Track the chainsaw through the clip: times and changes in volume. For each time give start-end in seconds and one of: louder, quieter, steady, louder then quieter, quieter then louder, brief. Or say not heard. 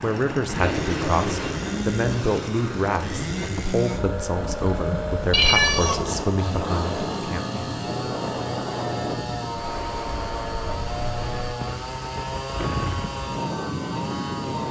0.0-14.6 steady.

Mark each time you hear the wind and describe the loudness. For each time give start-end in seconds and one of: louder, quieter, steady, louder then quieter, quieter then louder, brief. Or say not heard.
0.0-14.6 steady.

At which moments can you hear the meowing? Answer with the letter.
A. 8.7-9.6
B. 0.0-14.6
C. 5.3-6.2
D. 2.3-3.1
C.